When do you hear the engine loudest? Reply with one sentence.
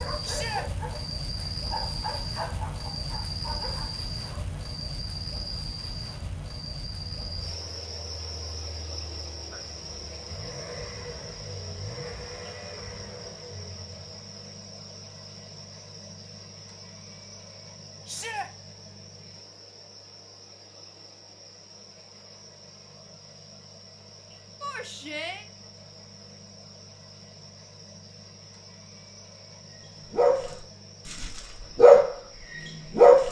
The loudest moment of the engine is at 12 seconds.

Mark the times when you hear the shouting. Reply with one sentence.
You can hear the shouting from 0.2 to 0.7 s, from 18.1 to 18.5 s and from 24.6 to 25.4 s.